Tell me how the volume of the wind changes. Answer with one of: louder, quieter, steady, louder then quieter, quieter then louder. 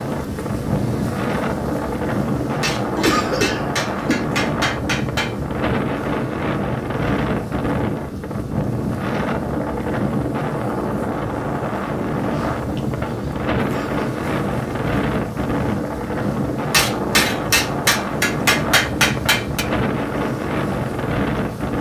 steady.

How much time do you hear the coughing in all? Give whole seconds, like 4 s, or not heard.
2 s.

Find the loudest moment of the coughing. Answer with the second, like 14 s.
3 s.